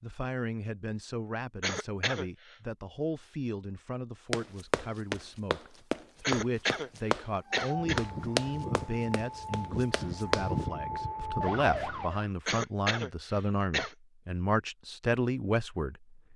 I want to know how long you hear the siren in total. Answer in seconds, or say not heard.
5 s.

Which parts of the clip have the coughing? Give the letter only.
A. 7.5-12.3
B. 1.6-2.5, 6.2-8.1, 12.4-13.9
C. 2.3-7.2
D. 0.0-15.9
B.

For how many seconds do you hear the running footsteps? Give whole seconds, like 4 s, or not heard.
6 s.